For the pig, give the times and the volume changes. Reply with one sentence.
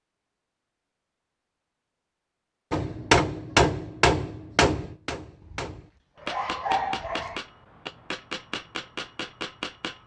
You can't hear the pig here.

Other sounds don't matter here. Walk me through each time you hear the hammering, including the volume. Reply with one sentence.
You can hear the hammering from 2.7 to 10.0 s, getting quieter.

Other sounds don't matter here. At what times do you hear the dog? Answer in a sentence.
You can hear the dog from 5.4 to 7.4 s.